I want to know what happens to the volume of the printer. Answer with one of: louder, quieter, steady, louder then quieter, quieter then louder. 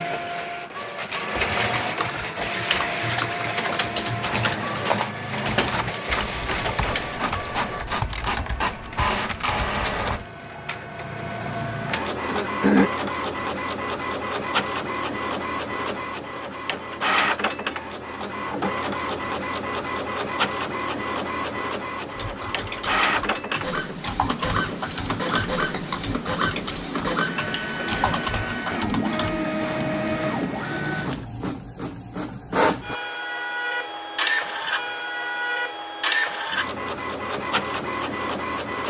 steady.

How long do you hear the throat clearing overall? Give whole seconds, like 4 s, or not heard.
2 s.